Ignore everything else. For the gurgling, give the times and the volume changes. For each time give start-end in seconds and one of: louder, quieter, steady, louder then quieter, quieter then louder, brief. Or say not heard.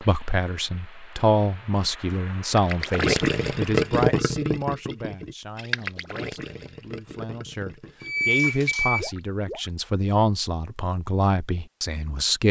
2.5-9.7 quieter.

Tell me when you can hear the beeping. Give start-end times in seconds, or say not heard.
8.0-9.1.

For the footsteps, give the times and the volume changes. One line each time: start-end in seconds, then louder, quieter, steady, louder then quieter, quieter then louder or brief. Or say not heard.
not heard.